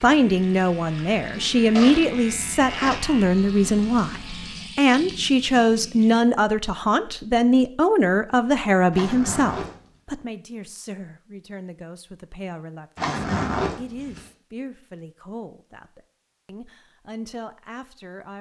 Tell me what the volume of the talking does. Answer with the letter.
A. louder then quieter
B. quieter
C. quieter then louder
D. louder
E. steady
B.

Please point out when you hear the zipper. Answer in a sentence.
You can hear the zipper from 1.8 to 3.0 s, from 8.9 to 9.8 s and from 12.9 to 14.2 s.